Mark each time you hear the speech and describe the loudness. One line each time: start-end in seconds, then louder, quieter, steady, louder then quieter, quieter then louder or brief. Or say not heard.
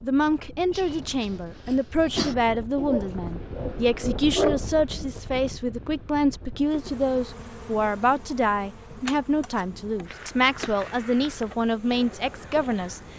0.0-13.0 steady.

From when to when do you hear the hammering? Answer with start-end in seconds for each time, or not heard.
not heard.